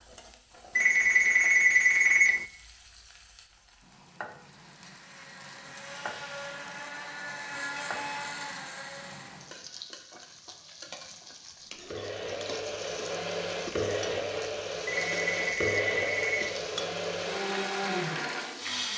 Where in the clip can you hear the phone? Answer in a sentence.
You can hear the phone from 0.8 to 2.5 s and from 14.8 to 16.6 s.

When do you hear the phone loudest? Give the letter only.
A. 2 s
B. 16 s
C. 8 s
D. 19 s
A.